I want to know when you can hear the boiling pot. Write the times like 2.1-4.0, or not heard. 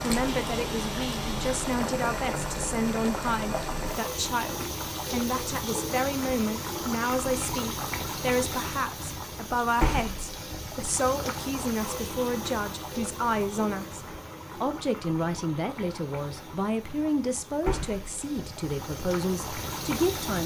0.0-20.4.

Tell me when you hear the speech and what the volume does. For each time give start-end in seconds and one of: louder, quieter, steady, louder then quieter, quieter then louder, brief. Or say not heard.
0.0-20.4 steady.